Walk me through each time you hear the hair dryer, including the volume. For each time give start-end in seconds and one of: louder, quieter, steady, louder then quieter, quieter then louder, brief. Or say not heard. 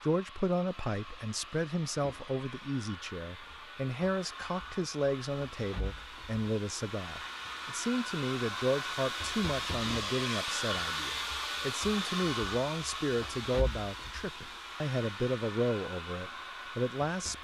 0.0-17.3 louder then quieter.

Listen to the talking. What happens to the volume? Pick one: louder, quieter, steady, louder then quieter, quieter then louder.
steady.